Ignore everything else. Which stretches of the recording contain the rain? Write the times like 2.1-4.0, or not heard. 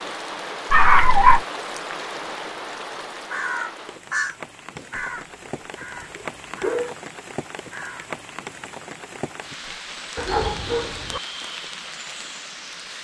0.0-12.9.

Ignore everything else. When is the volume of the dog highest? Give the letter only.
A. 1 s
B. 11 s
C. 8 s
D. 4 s
A.